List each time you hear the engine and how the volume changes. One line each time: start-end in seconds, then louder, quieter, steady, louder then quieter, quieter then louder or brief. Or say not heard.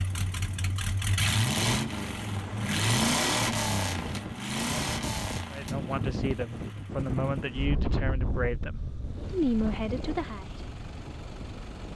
0.0-11.9 quieter.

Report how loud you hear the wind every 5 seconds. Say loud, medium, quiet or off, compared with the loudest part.
medium, loud, medium.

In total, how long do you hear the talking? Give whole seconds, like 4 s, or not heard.
5 s.